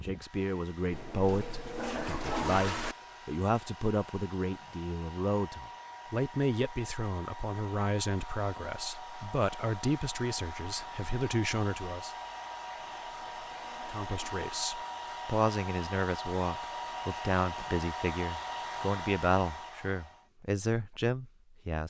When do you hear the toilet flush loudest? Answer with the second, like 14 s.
2 s.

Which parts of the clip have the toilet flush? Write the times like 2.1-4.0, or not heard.
0.9-3.0, 12.8-14.7.